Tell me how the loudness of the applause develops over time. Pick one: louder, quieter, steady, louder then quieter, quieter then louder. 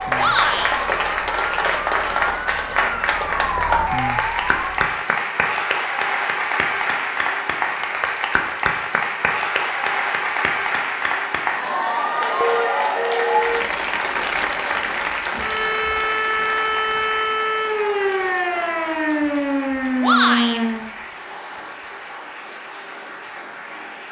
quieter.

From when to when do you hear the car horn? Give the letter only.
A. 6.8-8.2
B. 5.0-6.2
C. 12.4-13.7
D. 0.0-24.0
C.